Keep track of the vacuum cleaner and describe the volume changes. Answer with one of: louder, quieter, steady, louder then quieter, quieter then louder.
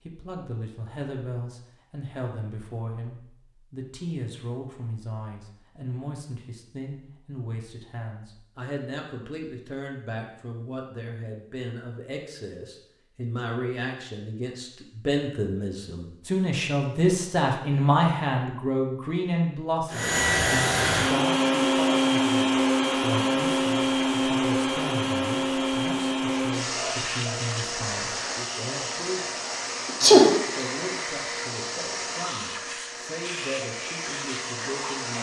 quieter.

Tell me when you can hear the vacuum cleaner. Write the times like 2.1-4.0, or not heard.
19.9-35.1.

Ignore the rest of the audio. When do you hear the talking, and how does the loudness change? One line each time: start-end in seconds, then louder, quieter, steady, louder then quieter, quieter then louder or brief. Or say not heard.
0.1-35.1 louder then quieter.